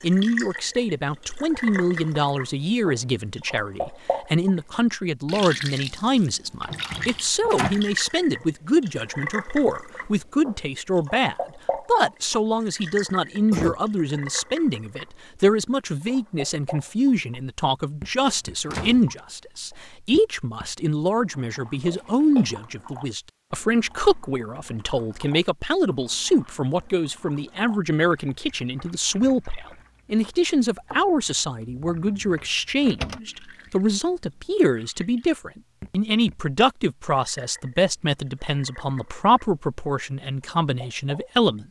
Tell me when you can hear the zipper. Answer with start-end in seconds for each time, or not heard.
not heard.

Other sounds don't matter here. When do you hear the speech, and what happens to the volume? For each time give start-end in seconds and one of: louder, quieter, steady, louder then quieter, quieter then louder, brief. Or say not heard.
0.0-41.6 steady.